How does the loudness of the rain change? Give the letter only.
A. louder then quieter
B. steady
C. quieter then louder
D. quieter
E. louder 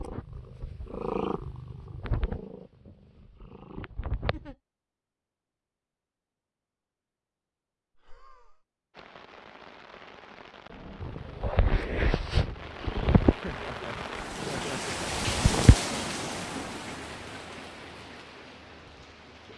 A.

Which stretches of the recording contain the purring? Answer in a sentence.
You can hear the purring from 0.0 to 4.5 s and from 11.0 to 15.8 s.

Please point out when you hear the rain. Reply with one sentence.
You can hear the rain from 8.9 to 19.5 s.